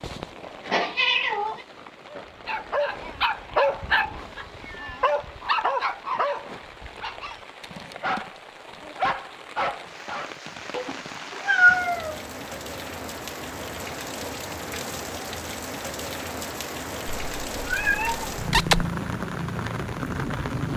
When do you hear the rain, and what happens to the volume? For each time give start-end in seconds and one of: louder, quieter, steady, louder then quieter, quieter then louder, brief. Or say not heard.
0.0-20.7 louder.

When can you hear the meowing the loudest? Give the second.
12 s.